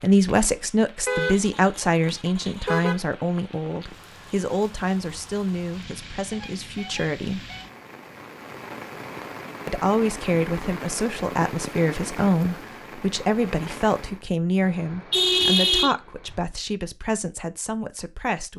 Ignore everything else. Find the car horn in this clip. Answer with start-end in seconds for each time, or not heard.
1.1-3.0, 6.3-7.7, 14.6-16.4.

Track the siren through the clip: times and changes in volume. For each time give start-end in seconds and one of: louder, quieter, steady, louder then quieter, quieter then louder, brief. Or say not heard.
not heard.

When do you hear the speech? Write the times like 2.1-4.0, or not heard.
0.0-7.5, 9.7-18.5.